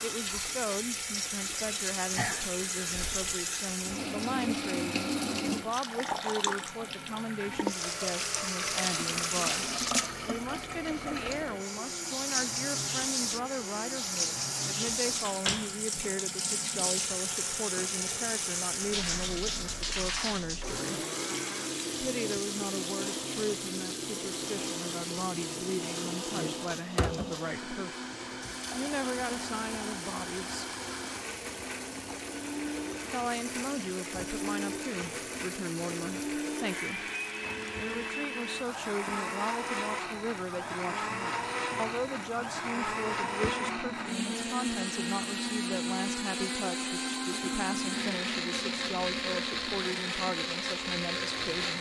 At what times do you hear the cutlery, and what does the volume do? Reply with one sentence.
You can't hear the cutlery here.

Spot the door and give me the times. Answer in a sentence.
The door can be heard from 14.8 to 15.8 s.